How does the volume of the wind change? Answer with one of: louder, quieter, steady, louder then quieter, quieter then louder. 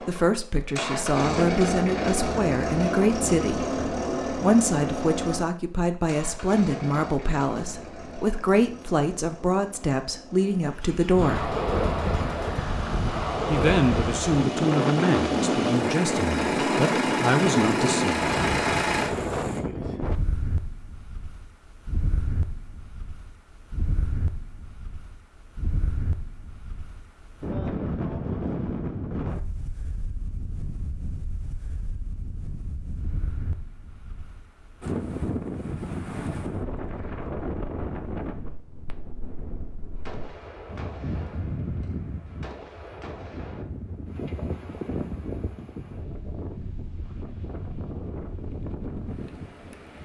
quieter.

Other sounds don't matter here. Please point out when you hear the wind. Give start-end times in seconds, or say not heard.
11.1-50.0.